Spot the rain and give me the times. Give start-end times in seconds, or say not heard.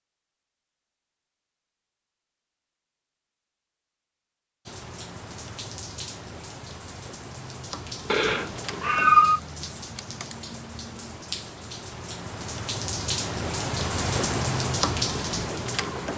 4.7-16.1.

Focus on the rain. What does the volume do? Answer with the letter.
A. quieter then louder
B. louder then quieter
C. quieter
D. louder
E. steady
D.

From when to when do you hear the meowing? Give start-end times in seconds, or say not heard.
8.1-9.4.